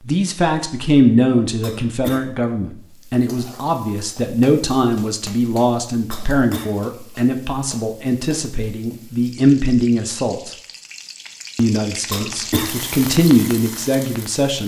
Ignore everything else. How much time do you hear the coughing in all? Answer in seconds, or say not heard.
2 s.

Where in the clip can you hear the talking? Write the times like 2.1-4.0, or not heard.
0.0-10.5, 11.6-14.6.